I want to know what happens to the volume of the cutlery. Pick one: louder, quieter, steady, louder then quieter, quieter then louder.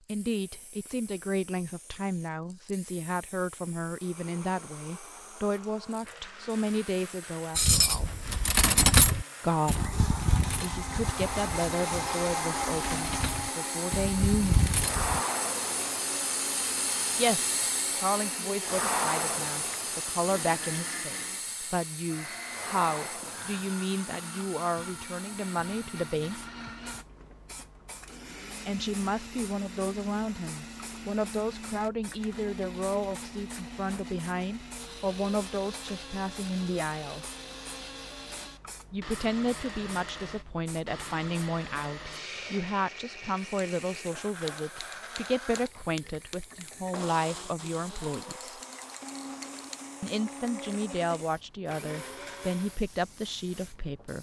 quieter then louder.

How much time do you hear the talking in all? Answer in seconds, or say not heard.
45 s.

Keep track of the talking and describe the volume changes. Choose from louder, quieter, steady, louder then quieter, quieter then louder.
steady.